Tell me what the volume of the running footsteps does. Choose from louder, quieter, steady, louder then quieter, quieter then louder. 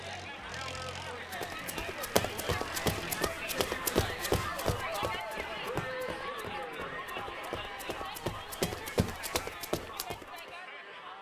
quieter then louder.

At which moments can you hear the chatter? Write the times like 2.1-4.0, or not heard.
0.0-11.1.